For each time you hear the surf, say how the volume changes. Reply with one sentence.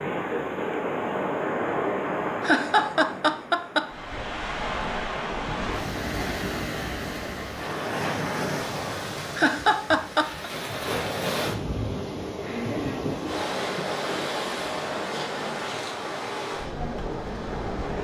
You can hear the surf from 0.0 to 18.0 s, at a steady volume.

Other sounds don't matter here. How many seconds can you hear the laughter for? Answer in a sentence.
You can hear the laughter for 4 seconds altogether.